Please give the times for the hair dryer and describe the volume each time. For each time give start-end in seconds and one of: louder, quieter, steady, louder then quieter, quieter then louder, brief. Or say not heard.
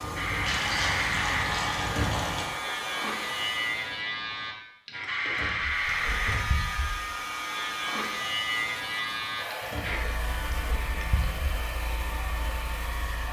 0.0-4.0 steady
5.7-13.2 steady.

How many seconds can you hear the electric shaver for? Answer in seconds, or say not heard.
13 s.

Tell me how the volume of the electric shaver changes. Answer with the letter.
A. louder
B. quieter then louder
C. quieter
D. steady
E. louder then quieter
C.